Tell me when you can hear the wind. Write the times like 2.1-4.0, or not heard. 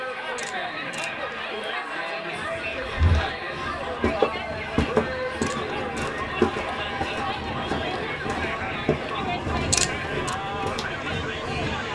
2.3-11.9.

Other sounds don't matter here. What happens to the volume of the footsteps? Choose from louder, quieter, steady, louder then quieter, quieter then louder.
quieter.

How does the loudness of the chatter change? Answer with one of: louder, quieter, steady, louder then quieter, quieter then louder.
steady.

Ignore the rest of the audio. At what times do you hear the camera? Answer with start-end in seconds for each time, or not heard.
0.3-1.4, 5.4-6.1, 9.7-10.3.